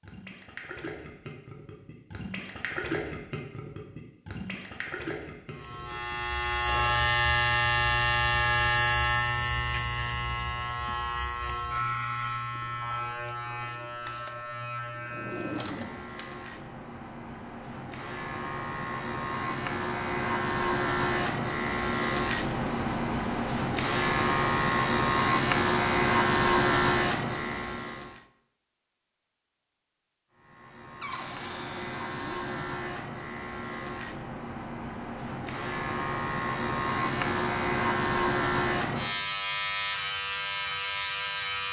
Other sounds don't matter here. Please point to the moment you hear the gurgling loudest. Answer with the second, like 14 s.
3 s.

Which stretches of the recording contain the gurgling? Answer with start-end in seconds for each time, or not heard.
0.0-7.1.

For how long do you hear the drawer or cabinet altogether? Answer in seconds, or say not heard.
3 s.